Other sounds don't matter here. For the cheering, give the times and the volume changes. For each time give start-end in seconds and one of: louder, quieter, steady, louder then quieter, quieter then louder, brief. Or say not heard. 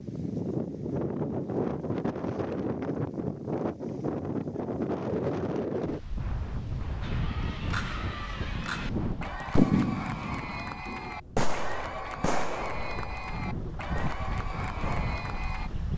7.0-15.7 steady.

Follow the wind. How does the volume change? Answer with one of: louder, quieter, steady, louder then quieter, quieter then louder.
quieter then louder.